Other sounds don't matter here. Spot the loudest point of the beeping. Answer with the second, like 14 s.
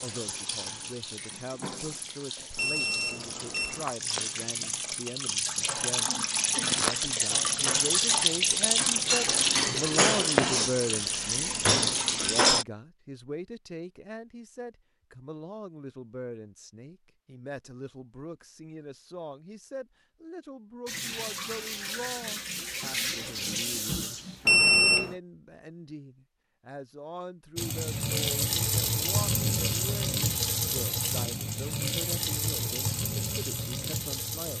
25 s.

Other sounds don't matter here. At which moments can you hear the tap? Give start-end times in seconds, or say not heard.
0.0-12.7, 20.9-25.1, 27.6-34.5.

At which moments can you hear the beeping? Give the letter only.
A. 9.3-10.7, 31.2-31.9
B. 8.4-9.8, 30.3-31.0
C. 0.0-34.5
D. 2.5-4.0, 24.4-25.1
D.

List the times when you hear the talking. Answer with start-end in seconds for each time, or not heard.
0.0-34.5.